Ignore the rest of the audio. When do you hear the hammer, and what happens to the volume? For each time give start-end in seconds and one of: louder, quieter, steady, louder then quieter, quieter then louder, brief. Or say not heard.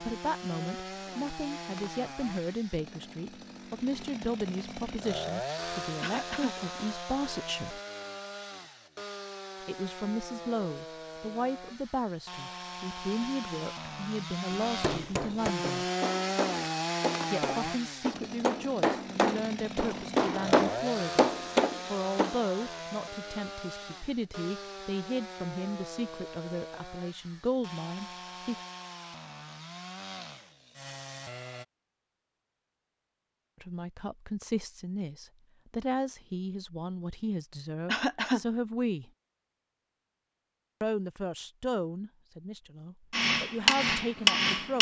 14.5-22.4 louder
43.1-44.7 brief.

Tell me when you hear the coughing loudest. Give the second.
38 s.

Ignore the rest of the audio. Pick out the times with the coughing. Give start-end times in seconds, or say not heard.
6.0-6.5, 37.9-38.4.